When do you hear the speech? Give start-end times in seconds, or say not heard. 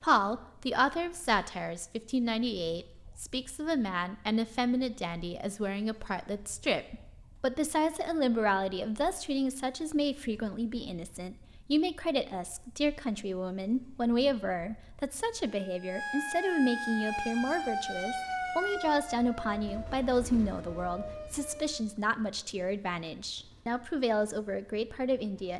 0.0-25.5.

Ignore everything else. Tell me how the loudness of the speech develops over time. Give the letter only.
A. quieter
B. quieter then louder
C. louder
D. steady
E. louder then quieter
D.